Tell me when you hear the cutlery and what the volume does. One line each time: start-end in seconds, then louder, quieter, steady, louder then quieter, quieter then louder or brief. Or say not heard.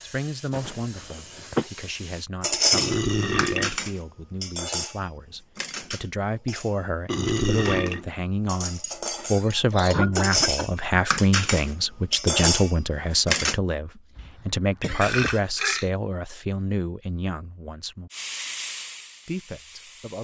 2.4-13.6 quieter then louder.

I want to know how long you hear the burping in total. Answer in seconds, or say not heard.
3 s.